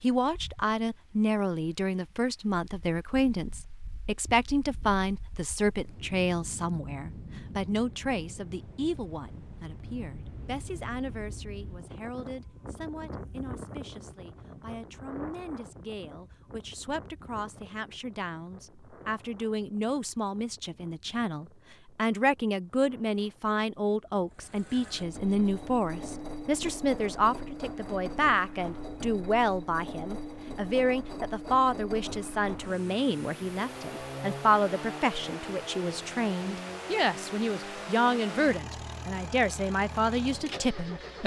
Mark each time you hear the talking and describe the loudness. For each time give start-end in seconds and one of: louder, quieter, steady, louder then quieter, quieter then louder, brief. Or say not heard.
0.0-41.2 quieter then louder.